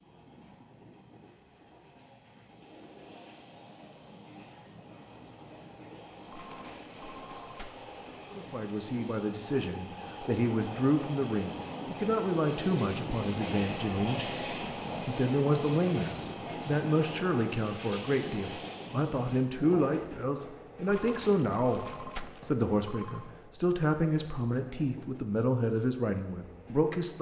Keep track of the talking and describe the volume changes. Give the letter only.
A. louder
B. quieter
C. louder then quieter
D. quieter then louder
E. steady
E.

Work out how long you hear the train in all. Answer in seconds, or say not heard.
27 s.